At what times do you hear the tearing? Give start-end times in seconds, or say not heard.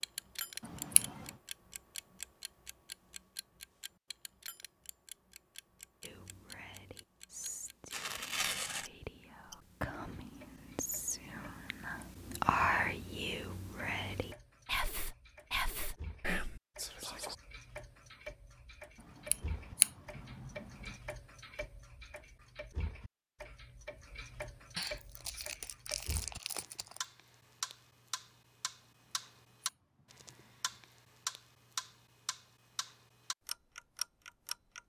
7.9-8.9, 24.8-27.0.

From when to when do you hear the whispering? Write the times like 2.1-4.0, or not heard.
6.0-17.4.